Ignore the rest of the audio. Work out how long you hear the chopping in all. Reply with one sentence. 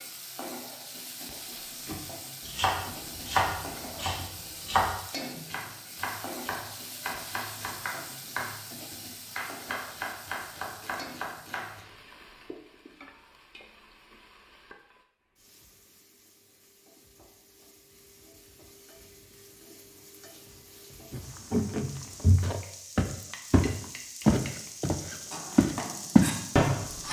You can hear the chopping for 12 seconds altogether.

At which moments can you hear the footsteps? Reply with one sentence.
The footsteps can be heard from 21.1 to 26.4 s.